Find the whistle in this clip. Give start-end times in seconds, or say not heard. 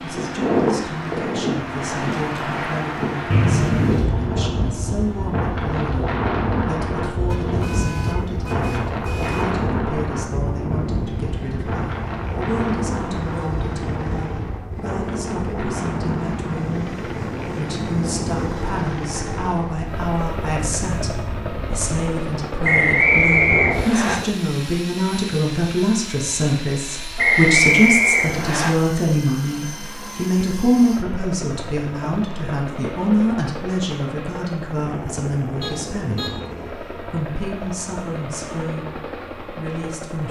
3.3-4.1, 22.6-24.1, 27.1-28.7.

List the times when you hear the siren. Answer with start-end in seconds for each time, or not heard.
not heard.